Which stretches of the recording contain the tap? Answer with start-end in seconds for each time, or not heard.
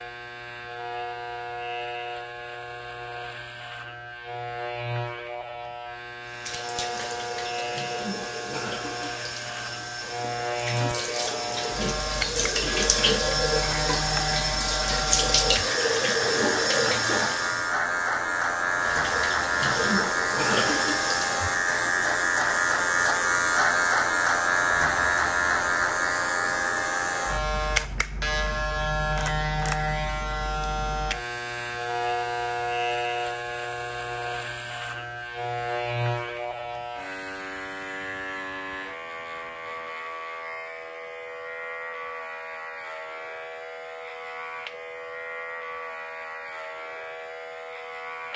6.2-17.7, 18.8-21.4.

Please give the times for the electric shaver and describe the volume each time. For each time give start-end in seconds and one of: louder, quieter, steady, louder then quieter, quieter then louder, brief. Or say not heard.
0.0-48.3 louder then quieter.